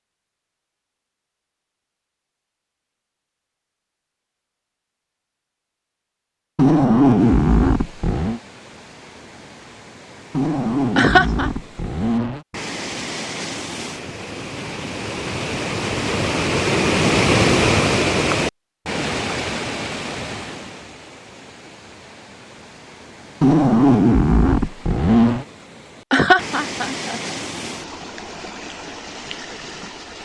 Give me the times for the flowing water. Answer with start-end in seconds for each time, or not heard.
7.2-30.1.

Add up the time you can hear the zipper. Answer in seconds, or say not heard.
6 s.